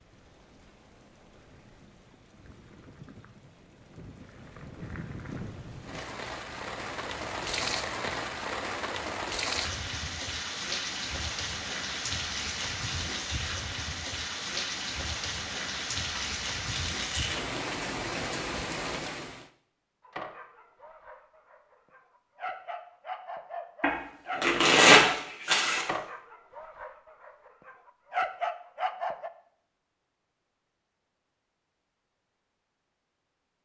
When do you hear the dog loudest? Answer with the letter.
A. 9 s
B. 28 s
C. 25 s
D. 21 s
B.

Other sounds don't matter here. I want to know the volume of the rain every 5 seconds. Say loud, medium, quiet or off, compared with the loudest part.
quiet, loud, loud, loud, off, off, off.